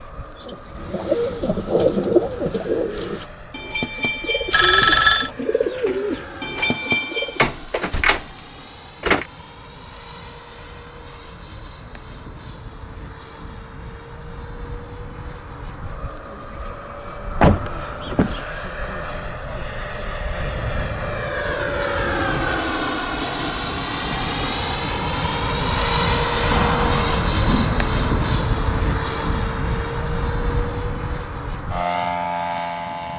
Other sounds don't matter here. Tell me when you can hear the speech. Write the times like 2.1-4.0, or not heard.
not heard.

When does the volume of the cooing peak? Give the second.
2 s.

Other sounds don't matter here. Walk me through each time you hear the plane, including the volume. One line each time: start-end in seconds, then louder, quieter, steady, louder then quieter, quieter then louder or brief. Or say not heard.
0.0-33.1 louder.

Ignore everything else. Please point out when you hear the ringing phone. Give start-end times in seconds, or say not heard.
4.5-5.3.